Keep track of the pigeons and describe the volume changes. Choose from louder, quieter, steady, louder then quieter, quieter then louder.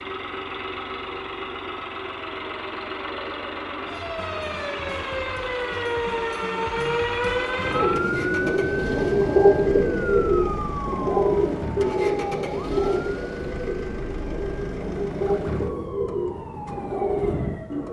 quieter.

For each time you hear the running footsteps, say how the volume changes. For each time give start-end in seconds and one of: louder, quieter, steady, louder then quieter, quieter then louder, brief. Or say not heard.
not heard.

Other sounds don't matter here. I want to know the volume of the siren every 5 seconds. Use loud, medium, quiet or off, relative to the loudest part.
medium, loud, medium, quiet.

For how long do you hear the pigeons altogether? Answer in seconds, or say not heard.
10 s.